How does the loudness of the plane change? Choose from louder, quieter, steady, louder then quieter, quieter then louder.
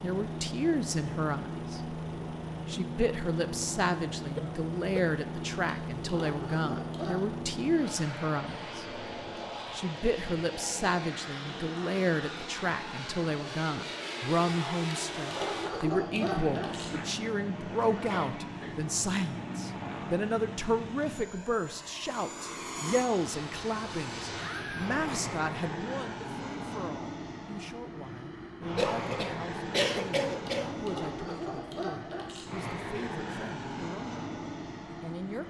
steady.